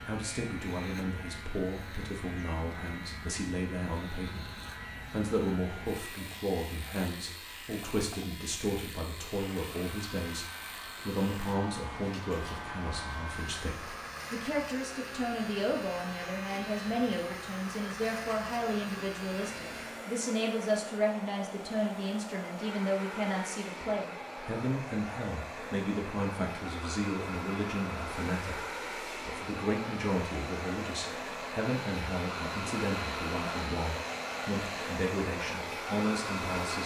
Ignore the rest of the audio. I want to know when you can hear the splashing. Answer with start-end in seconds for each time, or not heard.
not heard.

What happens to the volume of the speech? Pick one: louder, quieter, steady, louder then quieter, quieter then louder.
steady.